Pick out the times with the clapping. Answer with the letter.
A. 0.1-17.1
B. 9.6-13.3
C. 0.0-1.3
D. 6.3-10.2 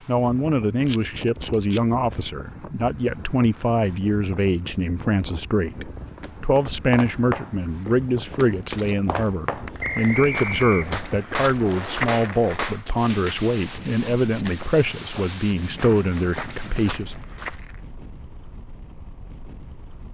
B.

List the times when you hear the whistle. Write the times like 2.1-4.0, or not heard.
9.8-11.1.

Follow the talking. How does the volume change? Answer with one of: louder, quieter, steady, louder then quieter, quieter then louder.
steady.